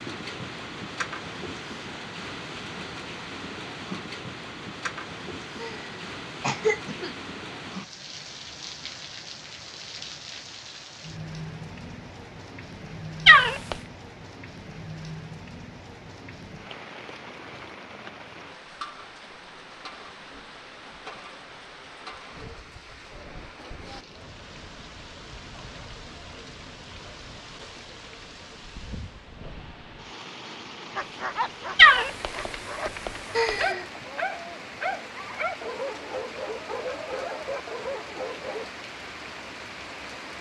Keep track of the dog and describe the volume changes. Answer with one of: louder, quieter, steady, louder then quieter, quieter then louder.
steady.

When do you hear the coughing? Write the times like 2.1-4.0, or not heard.
5.5-7.2, 33.3-34.0.